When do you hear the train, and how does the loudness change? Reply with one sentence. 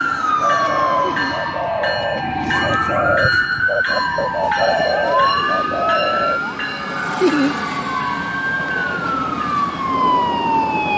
You can hear the train from 0.0 to 10.9 s, at a steady volume.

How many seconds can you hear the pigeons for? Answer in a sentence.
You can hear the pigeons for 6 seconds altogether.